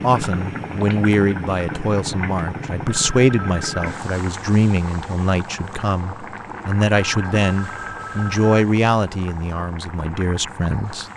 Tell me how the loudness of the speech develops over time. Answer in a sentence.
The loudness of the speech stays about the same.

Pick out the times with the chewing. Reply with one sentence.
The chewing can't be heard in this clip.